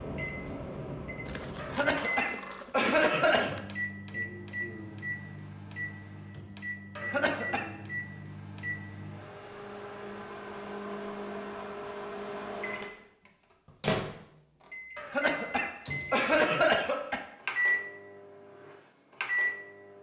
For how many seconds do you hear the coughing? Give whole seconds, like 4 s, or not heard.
5 s.